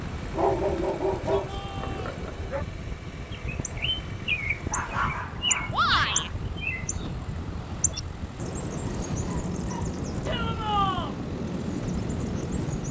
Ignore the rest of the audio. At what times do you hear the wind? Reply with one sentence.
You can hear the wind from 0.0 to 12.8 s.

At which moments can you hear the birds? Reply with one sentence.
The birds can be heard from 3.3 to 12.8 s.